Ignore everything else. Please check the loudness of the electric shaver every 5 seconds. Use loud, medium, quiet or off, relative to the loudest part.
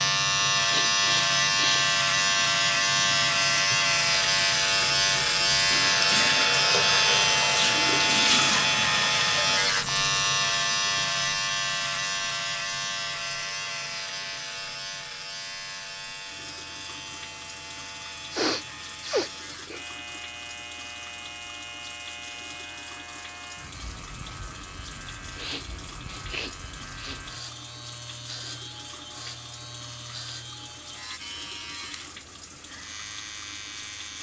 loud, loud, medium, quiet, quiet, quiet, quiet.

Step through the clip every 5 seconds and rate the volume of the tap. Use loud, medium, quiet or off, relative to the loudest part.
medium, loud, quiet, quiet, quiet, quiet, quiet.